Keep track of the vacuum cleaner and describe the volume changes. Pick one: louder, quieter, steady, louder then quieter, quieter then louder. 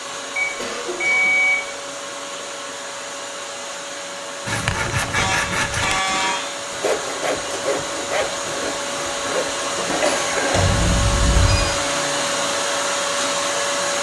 louder.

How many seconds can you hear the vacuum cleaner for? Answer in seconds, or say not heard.
14 s.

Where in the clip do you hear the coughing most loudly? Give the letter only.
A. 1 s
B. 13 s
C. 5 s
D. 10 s
D.